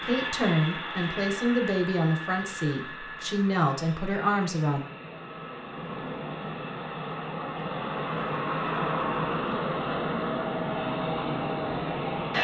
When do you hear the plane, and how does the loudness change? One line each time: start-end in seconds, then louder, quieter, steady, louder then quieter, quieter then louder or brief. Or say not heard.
0.0-12.3 quieter then louder.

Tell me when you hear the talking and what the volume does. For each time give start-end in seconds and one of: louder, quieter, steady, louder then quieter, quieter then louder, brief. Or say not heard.
0.0-4.8 steady.